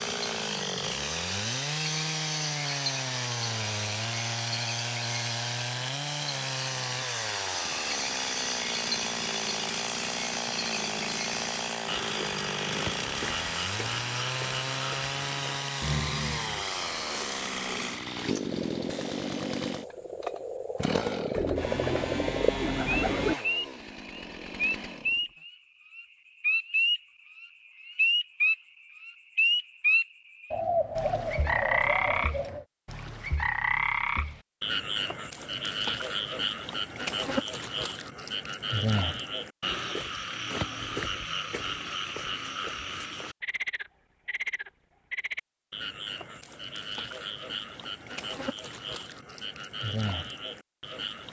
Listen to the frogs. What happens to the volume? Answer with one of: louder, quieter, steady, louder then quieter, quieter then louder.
louder then quieter.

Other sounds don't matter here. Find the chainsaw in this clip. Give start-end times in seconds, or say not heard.
0.0-25.3.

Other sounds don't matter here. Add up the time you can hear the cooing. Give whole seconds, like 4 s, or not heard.
4 s.